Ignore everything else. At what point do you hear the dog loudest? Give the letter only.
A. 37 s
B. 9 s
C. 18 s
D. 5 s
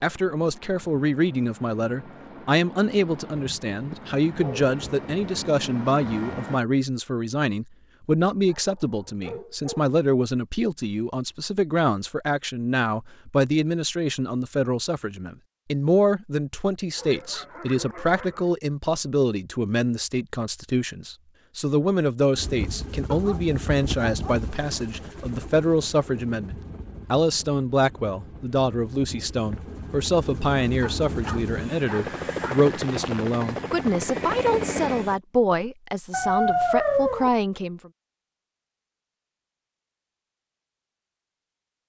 A.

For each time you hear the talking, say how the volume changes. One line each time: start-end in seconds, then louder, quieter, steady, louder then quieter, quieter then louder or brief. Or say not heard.
0.0-37.9 steady.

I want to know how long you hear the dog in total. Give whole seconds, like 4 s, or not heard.
8 s.